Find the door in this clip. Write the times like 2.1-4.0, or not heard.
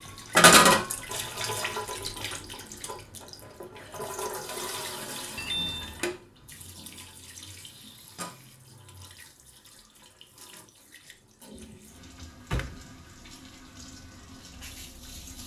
5.3-6.2, 11.6-12.9.